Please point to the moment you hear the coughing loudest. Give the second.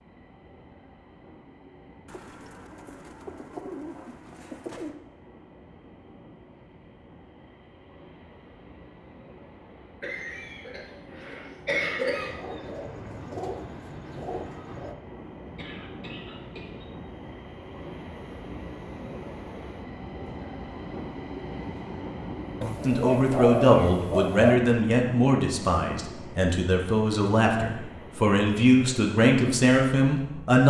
12 s.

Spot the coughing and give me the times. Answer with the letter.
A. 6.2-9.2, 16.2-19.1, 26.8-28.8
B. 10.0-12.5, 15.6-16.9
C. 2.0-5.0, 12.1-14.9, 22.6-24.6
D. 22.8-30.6
B.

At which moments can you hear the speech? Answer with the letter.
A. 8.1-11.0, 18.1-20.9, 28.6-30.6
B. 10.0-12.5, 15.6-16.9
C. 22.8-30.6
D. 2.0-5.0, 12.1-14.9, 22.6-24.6
C.